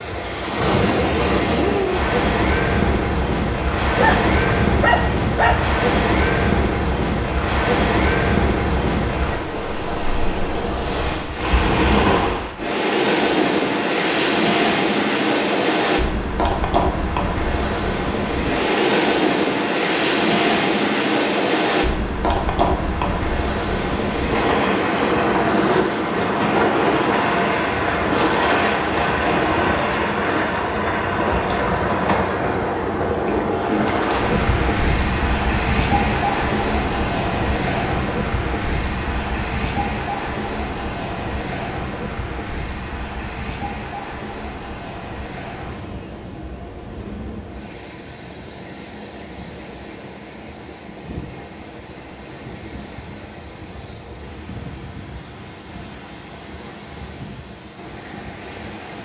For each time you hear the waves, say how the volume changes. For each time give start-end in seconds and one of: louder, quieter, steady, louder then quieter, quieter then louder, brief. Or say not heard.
0.0-58.9 quieter.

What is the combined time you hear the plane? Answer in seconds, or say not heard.
not heard.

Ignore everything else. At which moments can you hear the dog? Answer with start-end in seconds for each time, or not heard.
4.0-5.8.